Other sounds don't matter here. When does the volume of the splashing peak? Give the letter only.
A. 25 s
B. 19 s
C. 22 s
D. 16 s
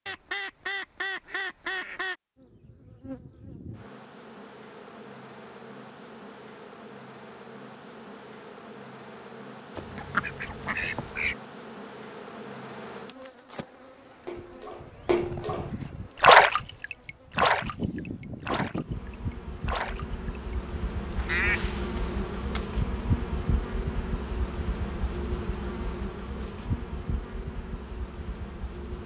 D.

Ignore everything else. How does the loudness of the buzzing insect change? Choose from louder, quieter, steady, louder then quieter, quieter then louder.
louder.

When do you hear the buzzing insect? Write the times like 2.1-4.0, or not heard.
2.4-29.0.